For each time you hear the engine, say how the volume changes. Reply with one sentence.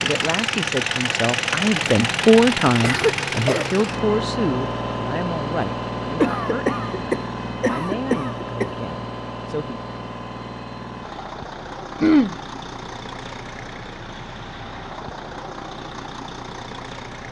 The engine can be heard from 0.0 to 17.2 s, getting quieter.